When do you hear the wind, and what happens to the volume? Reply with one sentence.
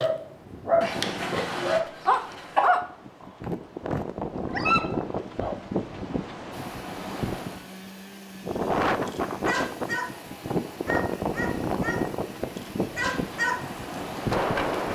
You can hear the wind from 0.1 to 14.9 s, getting louder.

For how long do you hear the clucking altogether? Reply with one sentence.
You can hear the clucking for 2 seconds altogether.